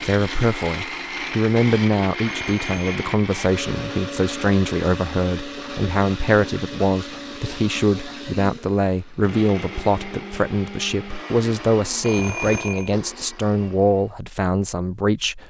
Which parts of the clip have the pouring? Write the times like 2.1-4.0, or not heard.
not heard.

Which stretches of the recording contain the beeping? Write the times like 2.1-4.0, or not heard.
2.2-3.0, 12.0-12.9.